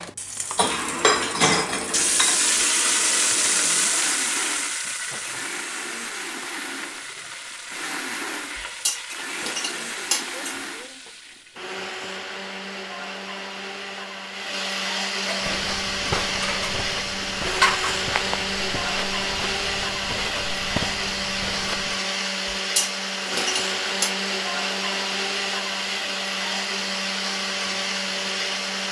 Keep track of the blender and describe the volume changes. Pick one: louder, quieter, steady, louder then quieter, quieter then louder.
louder.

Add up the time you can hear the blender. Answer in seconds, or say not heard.
29 s.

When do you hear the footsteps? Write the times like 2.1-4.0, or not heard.
15.4-21.9.